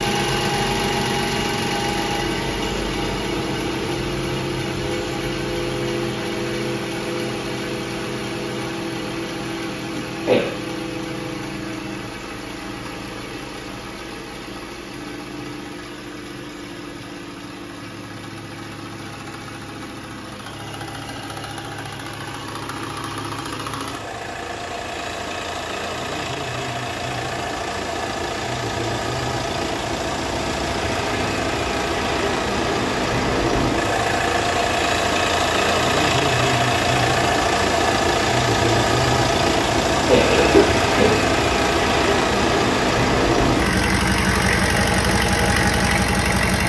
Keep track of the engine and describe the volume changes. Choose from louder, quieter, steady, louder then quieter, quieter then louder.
quieter then louder.